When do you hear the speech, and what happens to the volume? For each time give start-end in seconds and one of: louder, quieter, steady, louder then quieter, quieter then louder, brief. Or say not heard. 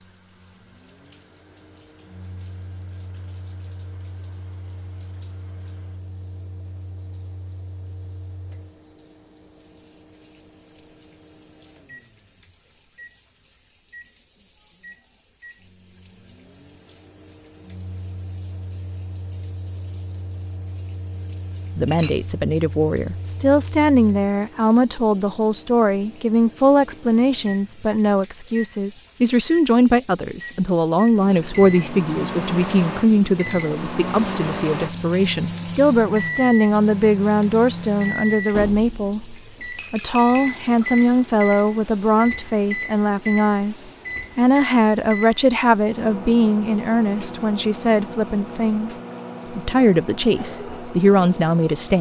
21.8-51.9 steady.